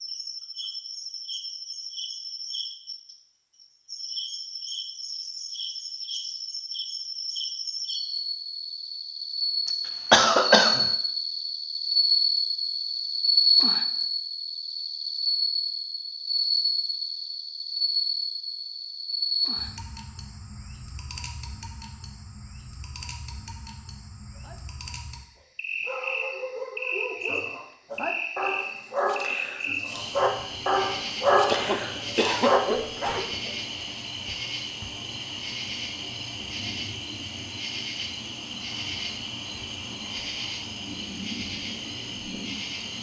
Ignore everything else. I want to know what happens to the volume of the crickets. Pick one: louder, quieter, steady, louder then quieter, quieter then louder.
louder then quieter.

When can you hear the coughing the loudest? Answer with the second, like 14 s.
10 s.